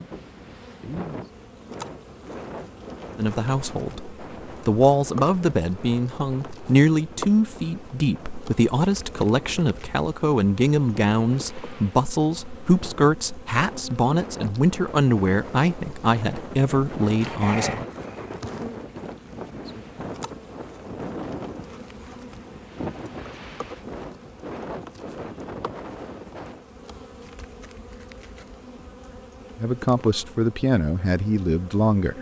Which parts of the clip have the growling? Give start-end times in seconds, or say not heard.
17.2-17.9.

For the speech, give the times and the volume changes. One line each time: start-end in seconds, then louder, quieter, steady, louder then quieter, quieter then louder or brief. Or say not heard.
3.1-17.9 steady
29.6-32.1 brief.